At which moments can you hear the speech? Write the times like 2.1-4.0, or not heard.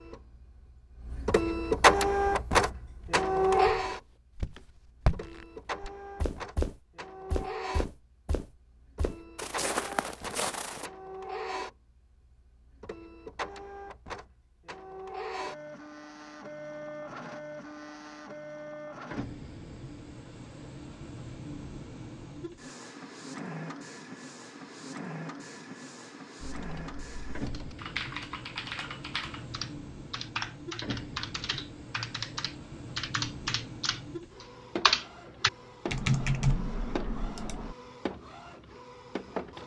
not heard.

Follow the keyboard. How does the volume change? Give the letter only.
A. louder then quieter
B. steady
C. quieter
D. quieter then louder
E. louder
E.